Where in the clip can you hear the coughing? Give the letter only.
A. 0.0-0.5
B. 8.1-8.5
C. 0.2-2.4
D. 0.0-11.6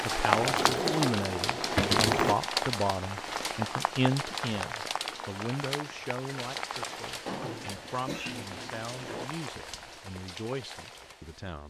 B.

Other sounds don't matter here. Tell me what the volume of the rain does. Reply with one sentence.
The loudness of the rain goes down.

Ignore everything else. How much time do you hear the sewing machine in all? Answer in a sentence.
The sewing machine can be heard for 2 seconds in total.